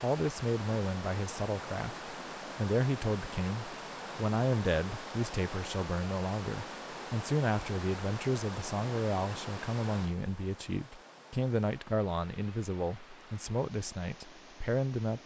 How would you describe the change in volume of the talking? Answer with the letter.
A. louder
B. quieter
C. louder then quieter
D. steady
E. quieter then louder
D.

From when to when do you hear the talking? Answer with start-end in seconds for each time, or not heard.
0.0-15.2.